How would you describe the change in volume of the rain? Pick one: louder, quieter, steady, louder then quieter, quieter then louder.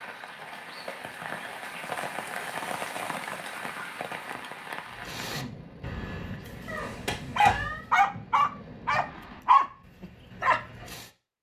quieter.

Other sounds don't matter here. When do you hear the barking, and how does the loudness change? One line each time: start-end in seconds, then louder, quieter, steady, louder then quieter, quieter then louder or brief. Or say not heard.
4.9-11.1 louder then quieter.